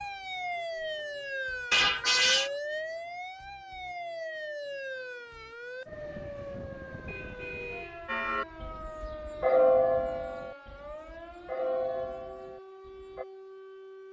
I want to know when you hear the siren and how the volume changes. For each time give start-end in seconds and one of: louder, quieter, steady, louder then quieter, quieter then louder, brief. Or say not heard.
0.0-14.0 quieter.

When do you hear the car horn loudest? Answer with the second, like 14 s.
2 s.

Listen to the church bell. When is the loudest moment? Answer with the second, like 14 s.
10 s.